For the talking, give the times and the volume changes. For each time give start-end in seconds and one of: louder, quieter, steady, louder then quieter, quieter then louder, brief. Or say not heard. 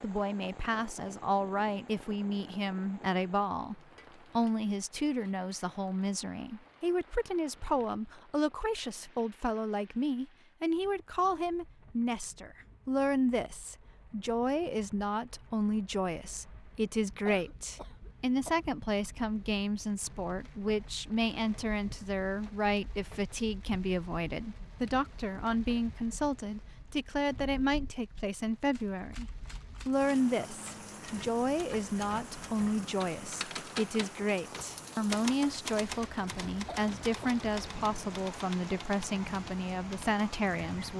0.0-40.9 steady.